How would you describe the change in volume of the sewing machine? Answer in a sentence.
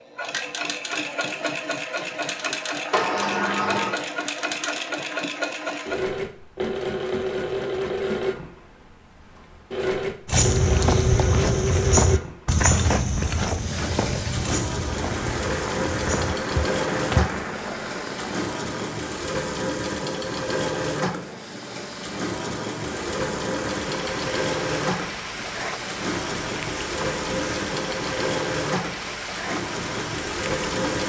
The loudness of the sewing machine stays about the same.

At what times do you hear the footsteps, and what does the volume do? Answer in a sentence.
You can hear the footsteps from 10.2 to 17.4 s, getting quieter.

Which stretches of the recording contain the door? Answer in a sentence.
You can hear the door from 2.9 to 4.0 s.